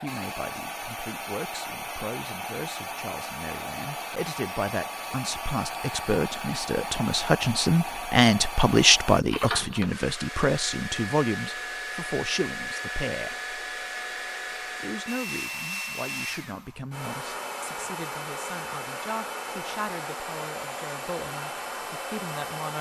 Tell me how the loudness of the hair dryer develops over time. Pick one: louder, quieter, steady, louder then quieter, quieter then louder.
steady.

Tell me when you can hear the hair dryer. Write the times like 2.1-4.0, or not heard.
0.0-22.7.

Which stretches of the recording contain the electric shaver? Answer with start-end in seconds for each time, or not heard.
not heard.